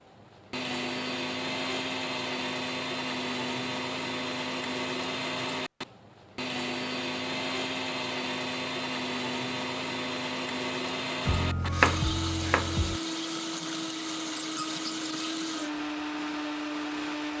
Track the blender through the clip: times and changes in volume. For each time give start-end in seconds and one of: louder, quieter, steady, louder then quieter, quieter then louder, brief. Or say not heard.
0.0-17.3 steady.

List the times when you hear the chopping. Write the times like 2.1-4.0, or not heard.
11.2-13.0.